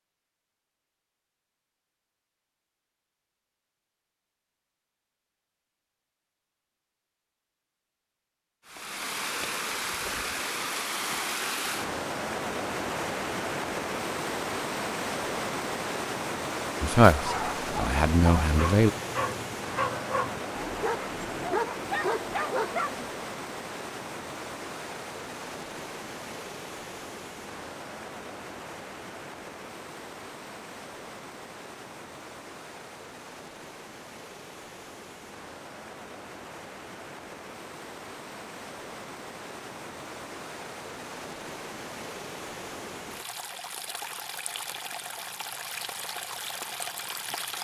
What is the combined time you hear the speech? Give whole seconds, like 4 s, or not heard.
2 s.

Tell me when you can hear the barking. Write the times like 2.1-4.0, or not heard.
17.1-23.1.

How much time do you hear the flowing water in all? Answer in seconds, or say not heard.
39 s.